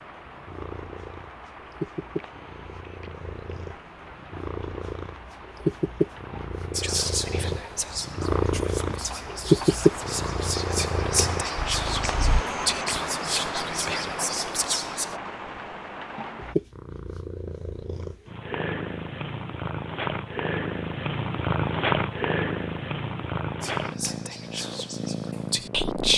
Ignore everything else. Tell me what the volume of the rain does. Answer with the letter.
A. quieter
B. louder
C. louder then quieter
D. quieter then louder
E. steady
B.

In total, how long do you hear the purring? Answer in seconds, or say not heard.
22 s.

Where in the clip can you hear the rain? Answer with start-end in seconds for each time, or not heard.
0.0-16.6.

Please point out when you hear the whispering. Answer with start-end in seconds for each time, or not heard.
6.7-15.2, 23.6-26.1.